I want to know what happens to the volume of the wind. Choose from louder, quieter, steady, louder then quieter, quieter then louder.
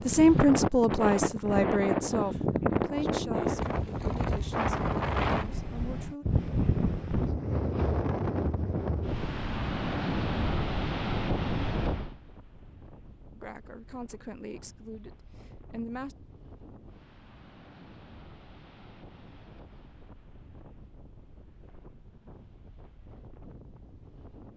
quieter.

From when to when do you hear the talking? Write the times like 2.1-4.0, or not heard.
0.1-6.2, 13.3-16.1.